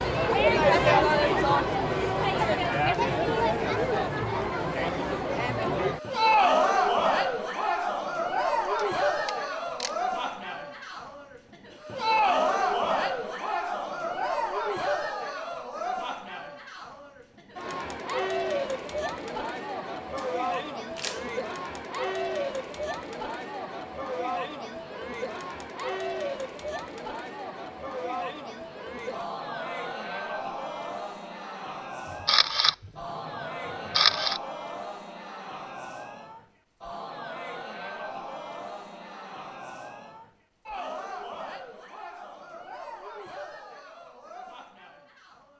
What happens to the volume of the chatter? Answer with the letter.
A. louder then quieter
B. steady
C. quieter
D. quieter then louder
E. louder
C.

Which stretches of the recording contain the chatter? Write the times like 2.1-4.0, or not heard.
0.0-45.5.